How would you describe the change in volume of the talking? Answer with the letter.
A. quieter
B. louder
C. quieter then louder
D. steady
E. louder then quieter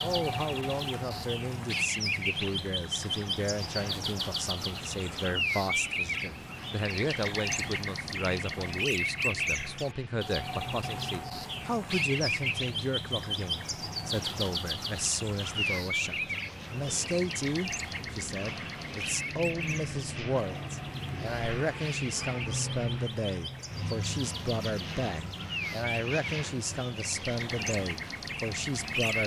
D.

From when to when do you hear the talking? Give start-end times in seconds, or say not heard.
0.0-29.2.